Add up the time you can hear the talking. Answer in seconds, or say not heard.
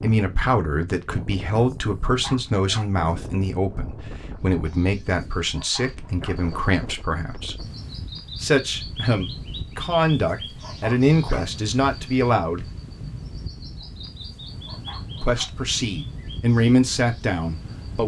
15 s.